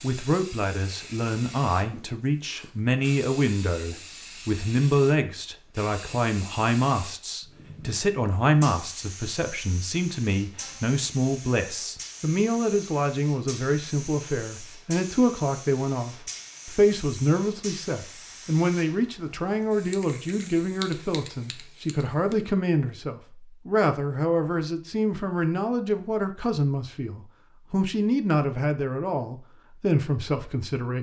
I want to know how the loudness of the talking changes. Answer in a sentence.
The loudness of the talking stays about the same.